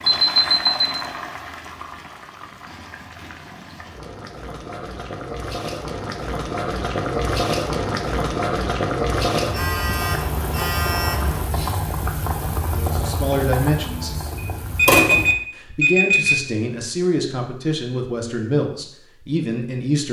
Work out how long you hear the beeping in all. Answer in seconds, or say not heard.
5 s.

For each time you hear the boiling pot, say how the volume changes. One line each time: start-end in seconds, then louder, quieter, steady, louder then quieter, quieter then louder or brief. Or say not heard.
0.0-15.3 louder.